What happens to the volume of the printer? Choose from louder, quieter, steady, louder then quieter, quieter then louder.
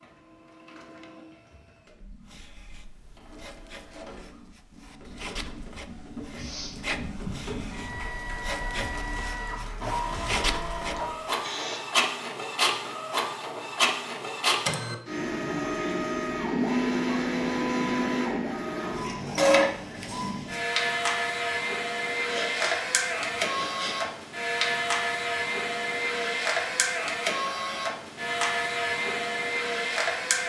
louder.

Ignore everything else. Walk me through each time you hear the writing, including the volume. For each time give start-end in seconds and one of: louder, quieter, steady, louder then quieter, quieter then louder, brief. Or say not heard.
2.2-11.2 louder.